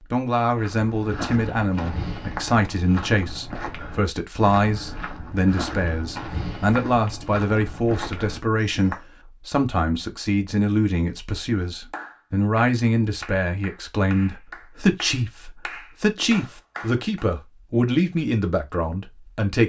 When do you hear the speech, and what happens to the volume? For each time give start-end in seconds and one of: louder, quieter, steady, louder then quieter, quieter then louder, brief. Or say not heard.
0.1-19.6 steady.